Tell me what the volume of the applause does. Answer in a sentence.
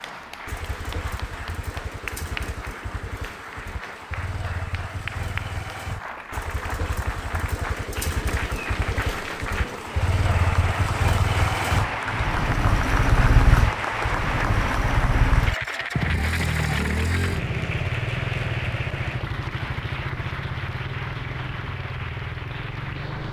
The volume of the applause goes up, then down.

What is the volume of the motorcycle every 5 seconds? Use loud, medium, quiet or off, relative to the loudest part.
quiet, medium, loud, loud, medium.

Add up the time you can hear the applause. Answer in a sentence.
You can hear the applause for 23 seconds altogether.